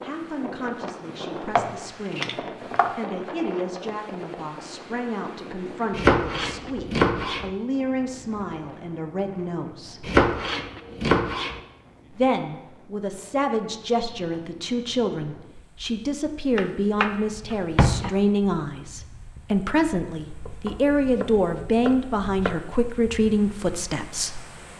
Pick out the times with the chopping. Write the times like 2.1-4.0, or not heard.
1.6-3.0, 5.9-7.5, 10.0-11.6, 16.6-18.1, 20.4-22.6.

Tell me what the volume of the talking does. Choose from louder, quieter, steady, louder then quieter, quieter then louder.
louder.